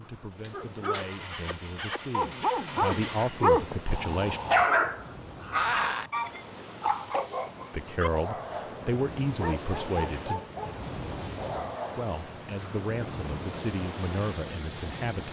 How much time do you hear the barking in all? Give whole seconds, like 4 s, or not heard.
12 s.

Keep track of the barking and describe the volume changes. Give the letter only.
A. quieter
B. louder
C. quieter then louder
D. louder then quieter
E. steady
D.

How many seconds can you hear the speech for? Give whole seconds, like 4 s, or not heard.
10 s.